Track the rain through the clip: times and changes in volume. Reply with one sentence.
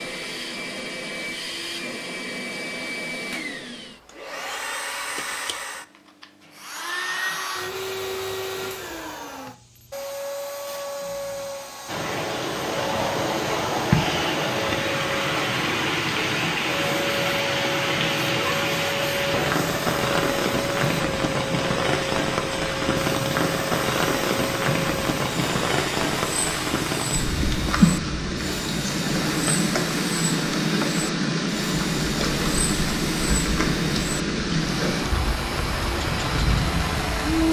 The rain can be heard from 11.8 to 37.4 s, at a steady volume.